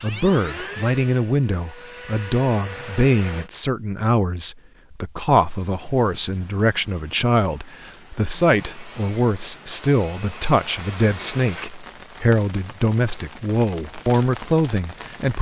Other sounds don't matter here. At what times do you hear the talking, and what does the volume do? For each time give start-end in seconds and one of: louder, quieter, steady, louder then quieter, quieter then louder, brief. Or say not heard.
0.0-15.3 steady.